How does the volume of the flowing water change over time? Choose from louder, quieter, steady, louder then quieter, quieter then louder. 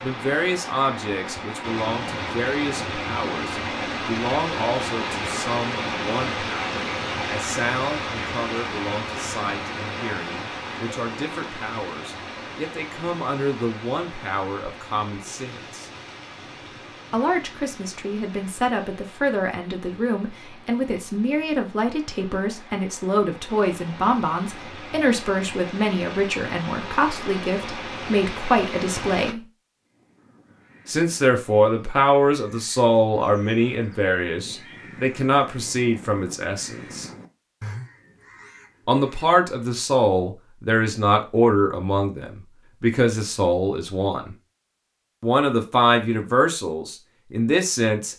quieter then louder.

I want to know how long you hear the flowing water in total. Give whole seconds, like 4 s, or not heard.
29 s.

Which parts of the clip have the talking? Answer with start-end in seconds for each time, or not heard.
0.0-15.9, 17.1-29.4, 30.9-37.0, 38.9-44.4, 45.2-48.1.